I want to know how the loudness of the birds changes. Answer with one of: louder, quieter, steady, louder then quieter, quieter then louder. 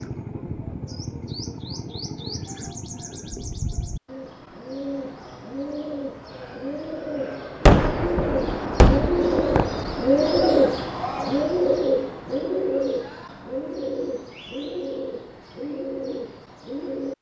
louder then quieter.